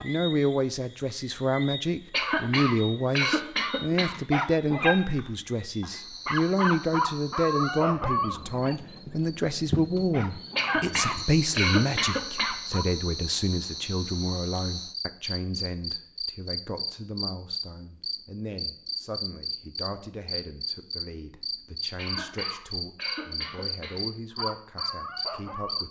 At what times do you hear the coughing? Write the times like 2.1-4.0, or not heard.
2.1-4.2, 10.6-12.6, 21.9-23.9.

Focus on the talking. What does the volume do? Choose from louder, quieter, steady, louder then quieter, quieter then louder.
quieter.